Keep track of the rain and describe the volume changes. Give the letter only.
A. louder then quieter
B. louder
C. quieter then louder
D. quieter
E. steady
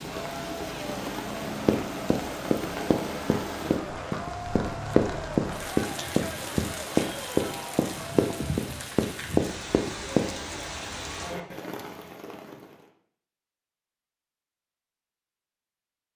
E.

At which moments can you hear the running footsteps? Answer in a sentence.
You can hear the running footsteps from 1.6 to 10.3 s.